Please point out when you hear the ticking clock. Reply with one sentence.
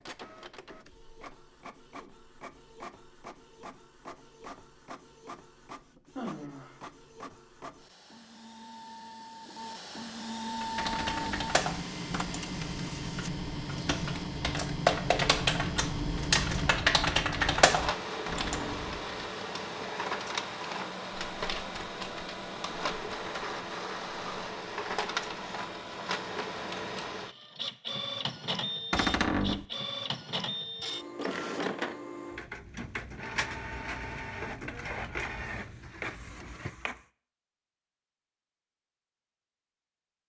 You can't hear the ticking clock here.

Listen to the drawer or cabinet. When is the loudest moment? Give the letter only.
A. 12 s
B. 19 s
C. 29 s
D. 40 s
C.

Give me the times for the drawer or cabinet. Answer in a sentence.
You can hear the drawer or cabinet from 10.8 to 11.5 s, from 18.2 to 18.9 s and from 28.9 to 29.6 s.